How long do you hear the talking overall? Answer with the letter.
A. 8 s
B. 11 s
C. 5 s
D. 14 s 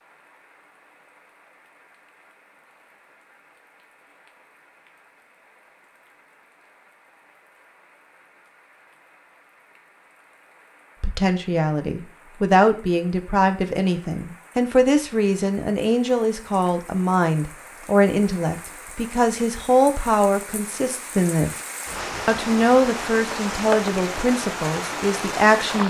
D.